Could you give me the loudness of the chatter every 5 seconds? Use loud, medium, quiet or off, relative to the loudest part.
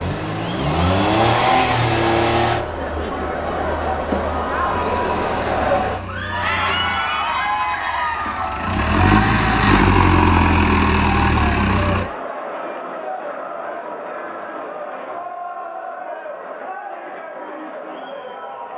loud, loud, medium, medium.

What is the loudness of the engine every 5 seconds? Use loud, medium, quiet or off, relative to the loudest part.
loud, medium, loud, off.